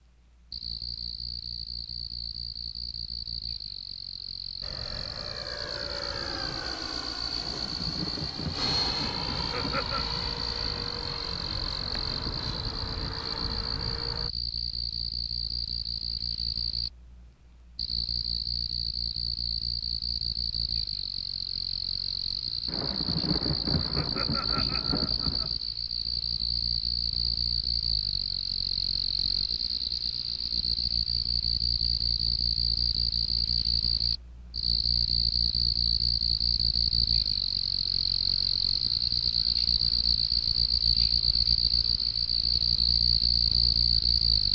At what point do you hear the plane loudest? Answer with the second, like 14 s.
9 s.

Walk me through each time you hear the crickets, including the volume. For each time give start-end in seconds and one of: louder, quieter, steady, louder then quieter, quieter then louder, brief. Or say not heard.
0.0-44.5 louder.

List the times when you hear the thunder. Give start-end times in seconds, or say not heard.
7.4-11.1, 22.6-25.6.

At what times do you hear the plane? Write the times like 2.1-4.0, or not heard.
4.6-14.3.